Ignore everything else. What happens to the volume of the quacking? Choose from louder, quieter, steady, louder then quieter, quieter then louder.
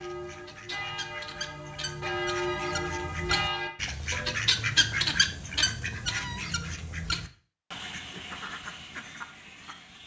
louder then quieter.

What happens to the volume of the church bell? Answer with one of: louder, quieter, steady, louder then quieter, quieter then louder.
louder.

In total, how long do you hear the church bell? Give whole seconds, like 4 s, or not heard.
4 s.